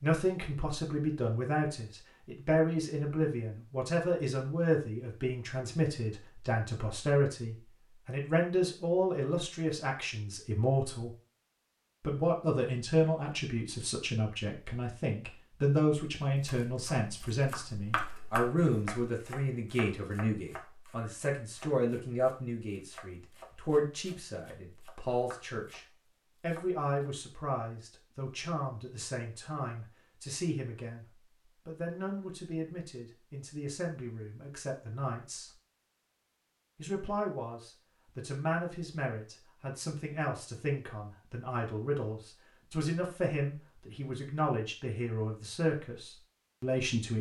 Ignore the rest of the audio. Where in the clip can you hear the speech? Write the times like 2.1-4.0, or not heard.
0.0-11.1, 12.0-25.8, 26.4-31.1, 31.6-35.5, 36.8-47.1.